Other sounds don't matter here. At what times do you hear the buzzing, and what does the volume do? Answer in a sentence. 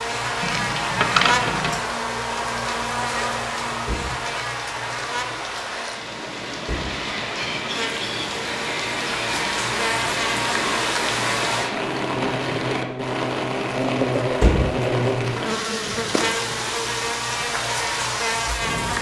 The buzzing can be heard from 0.0 to 18.9 s, getting quieter then louder.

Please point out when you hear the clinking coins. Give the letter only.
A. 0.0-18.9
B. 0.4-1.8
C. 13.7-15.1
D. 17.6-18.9
B.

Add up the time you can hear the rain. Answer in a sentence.
The rain can be heard for 19 seconds in total.